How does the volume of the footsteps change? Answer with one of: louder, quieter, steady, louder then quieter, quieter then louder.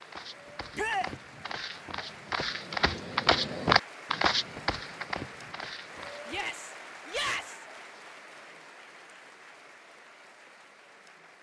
louder then quieter.